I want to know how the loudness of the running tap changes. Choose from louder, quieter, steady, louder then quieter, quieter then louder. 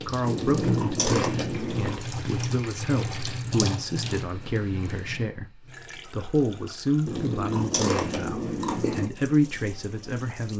quieter.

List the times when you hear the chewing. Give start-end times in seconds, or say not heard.
0.3-2.0, 7.0-9.1.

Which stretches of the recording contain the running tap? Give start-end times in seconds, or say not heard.
0.0-10.5.